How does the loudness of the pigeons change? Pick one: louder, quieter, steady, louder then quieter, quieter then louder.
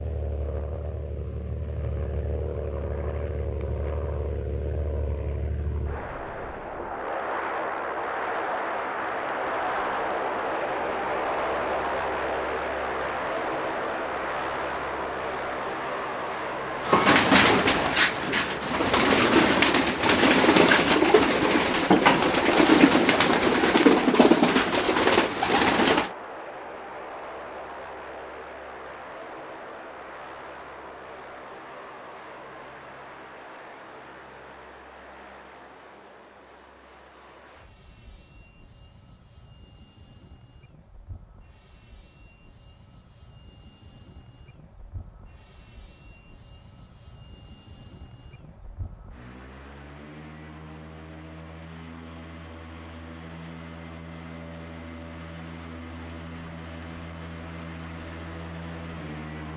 steady.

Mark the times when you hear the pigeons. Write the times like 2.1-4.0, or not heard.
16.8-26.1.